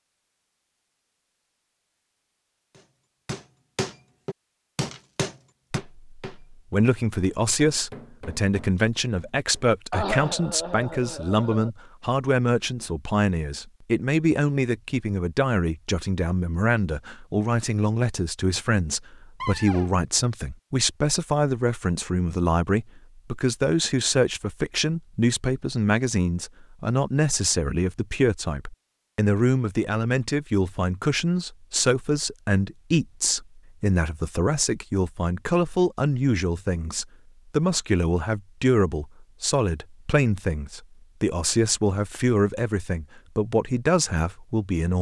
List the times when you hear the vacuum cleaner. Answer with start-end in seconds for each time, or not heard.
not heard.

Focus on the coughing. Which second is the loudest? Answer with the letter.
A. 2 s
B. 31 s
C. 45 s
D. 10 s
D.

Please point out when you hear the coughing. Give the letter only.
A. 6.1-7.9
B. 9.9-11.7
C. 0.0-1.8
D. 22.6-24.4
B.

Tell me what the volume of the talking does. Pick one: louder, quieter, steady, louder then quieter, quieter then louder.
steady.